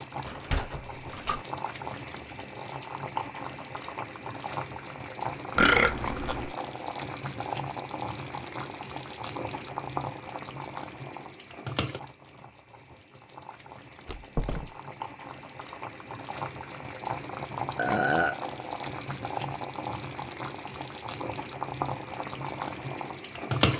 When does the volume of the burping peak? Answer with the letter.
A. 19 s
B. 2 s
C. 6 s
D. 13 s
C.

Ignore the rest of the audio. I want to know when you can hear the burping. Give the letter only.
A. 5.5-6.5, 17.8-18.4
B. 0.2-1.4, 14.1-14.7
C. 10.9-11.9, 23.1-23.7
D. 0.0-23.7
A.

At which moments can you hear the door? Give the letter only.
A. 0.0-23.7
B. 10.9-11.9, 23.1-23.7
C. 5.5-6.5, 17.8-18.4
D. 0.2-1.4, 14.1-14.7
D.